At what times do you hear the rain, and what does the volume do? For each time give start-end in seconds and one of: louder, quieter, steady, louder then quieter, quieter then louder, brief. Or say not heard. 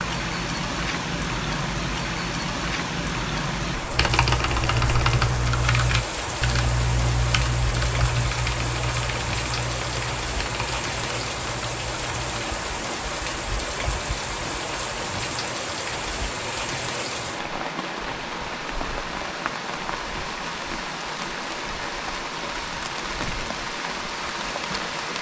0.0-25.1 steady.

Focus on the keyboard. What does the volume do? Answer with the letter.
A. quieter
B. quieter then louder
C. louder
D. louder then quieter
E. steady
A.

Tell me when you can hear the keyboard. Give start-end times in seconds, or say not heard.
3.9-12.3.